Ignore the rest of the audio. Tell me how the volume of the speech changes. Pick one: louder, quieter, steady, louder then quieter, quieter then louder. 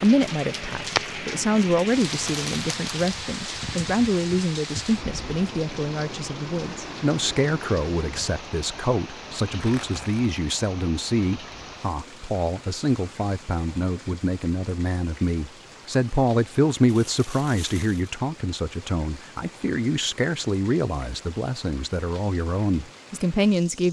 steady.